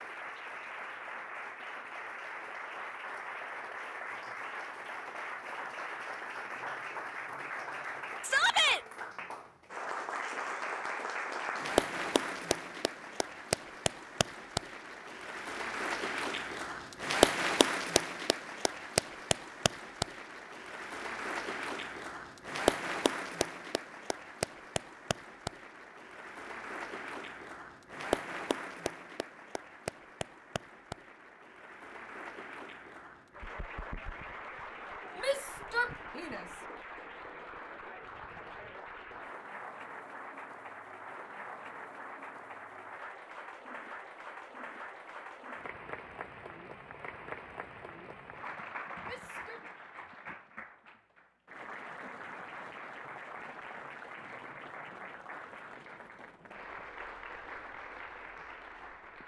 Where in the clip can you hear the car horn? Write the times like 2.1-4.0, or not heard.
not heard.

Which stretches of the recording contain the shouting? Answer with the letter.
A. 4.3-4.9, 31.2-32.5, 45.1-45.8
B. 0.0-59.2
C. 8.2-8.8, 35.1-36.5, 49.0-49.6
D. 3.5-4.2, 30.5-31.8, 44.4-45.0
C.